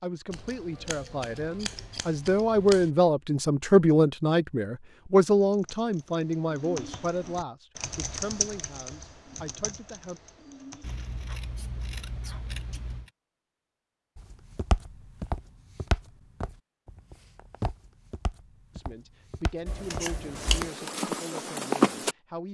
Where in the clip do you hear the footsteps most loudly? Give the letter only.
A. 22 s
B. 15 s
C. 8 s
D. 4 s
A.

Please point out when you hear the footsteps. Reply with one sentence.
The footsteps can be heard from 14.2 to 22.1 s.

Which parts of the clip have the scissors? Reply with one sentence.
The scissors can be heard from 0.3 to 2.9 s, from 10.8 to 13.1 s and from 19.6 to 20.7 s.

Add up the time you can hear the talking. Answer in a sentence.
You can hear the talking for 14 seconds altogether.